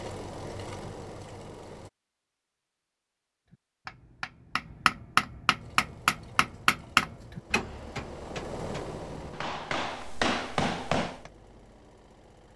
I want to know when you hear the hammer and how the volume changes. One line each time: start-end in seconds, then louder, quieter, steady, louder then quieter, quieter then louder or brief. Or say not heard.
3.5-11.3 quieter then louder.